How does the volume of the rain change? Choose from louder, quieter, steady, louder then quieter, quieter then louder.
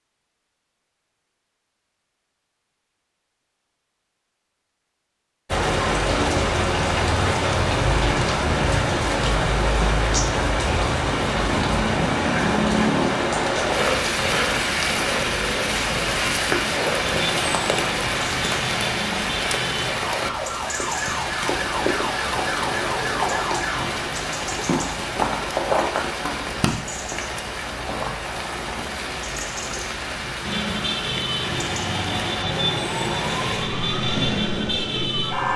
quieter.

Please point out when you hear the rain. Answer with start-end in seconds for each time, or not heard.
5.5-35.5.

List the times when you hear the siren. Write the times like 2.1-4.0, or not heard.
17.0-23.9, 30.4-35.5.